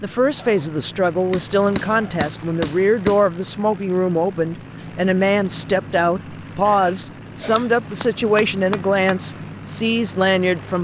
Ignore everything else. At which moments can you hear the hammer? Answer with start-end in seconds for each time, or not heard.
1.3-3.2, 7.5-9.2.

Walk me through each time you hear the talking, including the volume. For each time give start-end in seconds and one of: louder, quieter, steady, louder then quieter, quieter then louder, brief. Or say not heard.
0.0-10.7 steady.